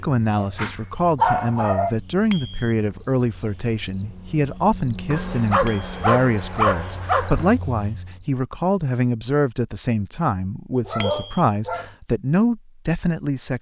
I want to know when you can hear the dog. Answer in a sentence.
The dog can be heard from 0.3 to 1.9 s, from 5.1 to 7.5 s and from 10.8 to 11.9 s.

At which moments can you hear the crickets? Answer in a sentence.
The crickets can be heard from 0.0 to 8.3 s.